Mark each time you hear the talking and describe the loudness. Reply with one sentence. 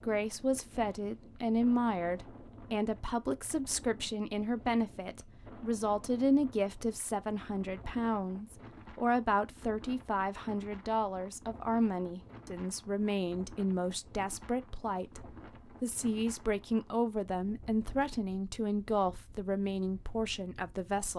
You can hear the talking from 0.0 to 21.1 s, at a steady volume.